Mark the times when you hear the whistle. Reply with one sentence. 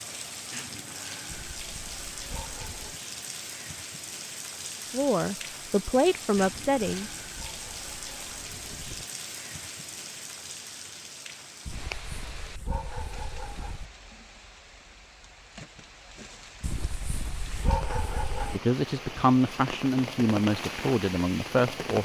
The whistle can't be heard in this clip.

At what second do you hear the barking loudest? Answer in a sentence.
The loudest moment of the barking is at 18 seconds.